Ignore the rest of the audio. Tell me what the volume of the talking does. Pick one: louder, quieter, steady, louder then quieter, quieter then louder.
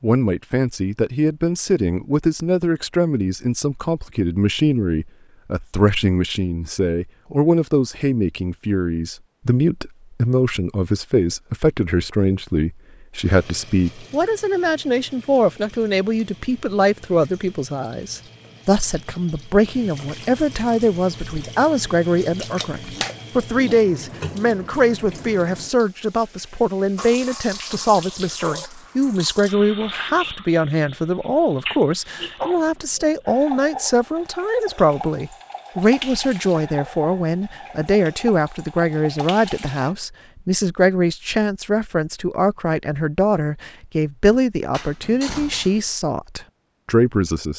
steady.